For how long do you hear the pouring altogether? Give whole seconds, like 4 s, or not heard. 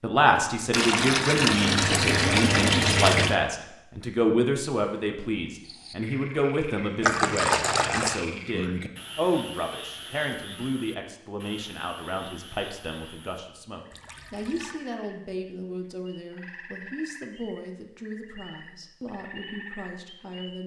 5 s.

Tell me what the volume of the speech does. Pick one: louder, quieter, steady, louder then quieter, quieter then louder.
quieter.